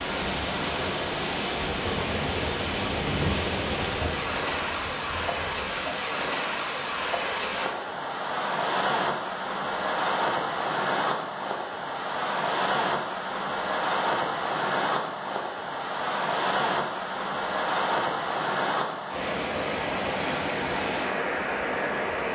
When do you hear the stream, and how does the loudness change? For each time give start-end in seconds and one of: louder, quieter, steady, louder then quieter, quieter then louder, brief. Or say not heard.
0.0-22.2 steady.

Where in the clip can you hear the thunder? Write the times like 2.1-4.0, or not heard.
1.8-5.9.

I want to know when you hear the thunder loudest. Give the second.
3 s.